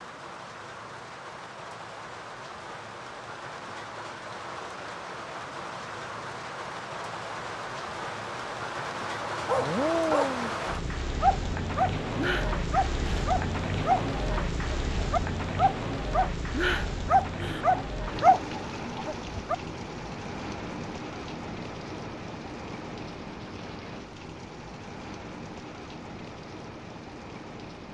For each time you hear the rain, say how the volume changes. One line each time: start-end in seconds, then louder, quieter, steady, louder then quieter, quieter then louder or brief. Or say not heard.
0.0-27.8 louder then quieter.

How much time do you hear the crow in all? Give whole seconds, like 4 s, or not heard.
not heard.